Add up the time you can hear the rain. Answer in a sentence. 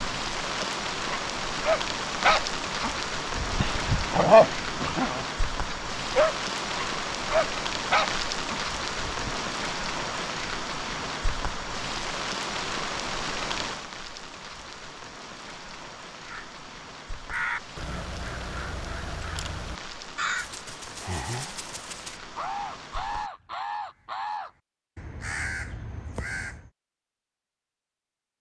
The rain can be heard for 23 seconds in total.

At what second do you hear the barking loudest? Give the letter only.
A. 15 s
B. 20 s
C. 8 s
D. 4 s
D.